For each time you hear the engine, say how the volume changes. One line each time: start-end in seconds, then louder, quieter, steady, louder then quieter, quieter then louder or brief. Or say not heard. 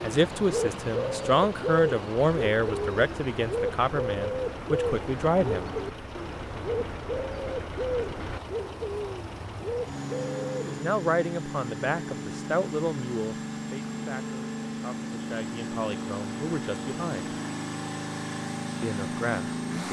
0.0-19.8 louder.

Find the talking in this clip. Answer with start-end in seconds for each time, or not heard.
0.0-5.7, 10.7-17.4, 18.8-19.8.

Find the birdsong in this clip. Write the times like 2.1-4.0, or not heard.
0.0-10.8.